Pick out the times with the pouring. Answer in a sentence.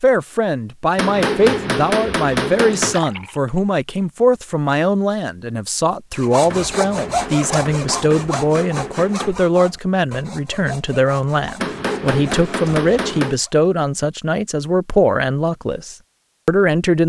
You can hear the pouring from 2.9 to 3.6 s.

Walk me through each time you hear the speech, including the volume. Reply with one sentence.
You can hear the speech from 0.0 to 17.0 s, at a steady volume.